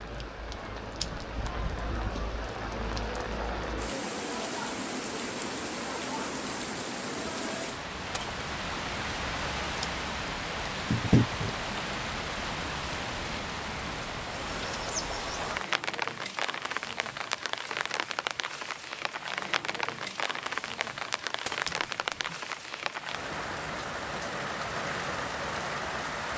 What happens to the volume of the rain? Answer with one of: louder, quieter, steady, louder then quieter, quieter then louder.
steady.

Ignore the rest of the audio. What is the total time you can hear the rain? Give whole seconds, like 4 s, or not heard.
26 s.